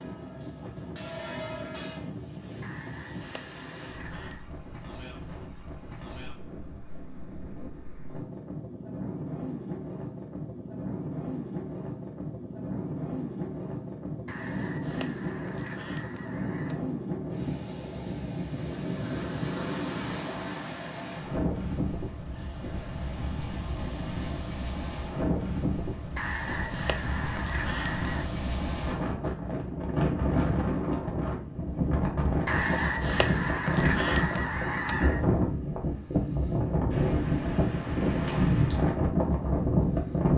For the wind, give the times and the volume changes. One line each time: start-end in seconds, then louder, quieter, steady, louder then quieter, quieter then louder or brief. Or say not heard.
0.0-40.3 louder.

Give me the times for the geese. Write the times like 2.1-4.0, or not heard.
2.6-4.5, 14.2-16.8, 26.1-28.3, 32.5-35.2.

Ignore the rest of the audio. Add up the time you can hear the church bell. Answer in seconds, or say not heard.
2 s.